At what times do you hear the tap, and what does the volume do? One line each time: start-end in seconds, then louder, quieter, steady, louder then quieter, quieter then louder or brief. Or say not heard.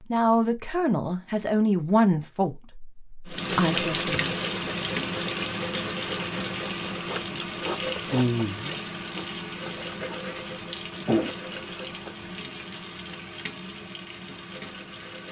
3.2-15.2 quieter.